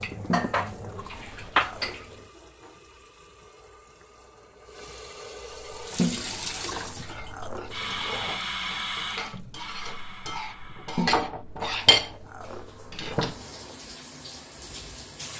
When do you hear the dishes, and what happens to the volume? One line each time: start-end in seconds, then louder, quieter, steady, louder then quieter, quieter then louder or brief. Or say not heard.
0.0-2.1 brief
5.5-13.4 louder.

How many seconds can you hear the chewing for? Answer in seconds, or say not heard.
7 s.